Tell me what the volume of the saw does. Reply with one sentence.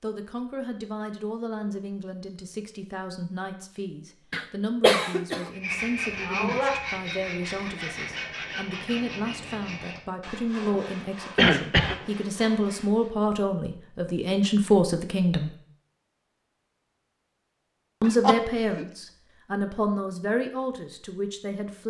The volume of the saw goes down.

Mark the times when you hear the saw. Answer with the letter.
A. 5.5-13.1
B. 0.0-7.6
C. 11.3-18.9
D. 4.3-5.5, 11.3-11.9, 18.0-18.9
A.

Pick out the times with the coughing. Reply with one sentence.
You can hear the coughing from 4.3 to 5.5 s, from 11.3 to 11.9 s and from 18.0 to 18.9 s.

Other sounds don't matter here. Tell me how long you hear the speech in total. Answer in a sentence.
You can hear the speech for 19 seconds altogether.